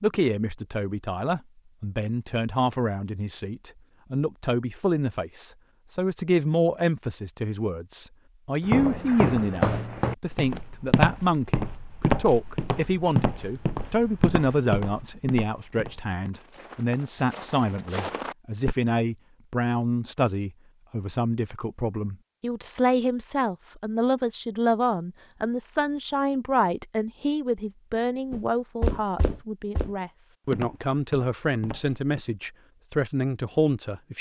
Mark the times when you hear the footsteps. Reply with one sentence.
You can hear the footsteps from 8.6 to 18.8 s and from 28.3 to 32.2 s.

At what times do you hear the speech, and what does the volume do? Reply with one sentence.
You can hear the speech from 0.0 to 34.1 s, at a steady volume.